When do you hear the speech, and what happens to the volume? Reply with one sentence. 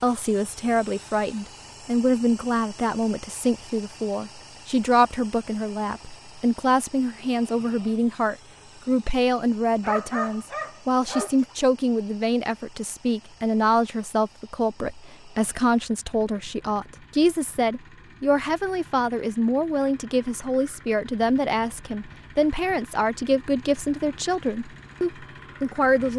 You can hear the speech from 0.0 to 26.1 s, at a steady volume.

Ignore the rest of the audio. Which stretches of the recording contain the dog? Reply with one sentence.
The dog can be heard from 9.8 to 11.6 s.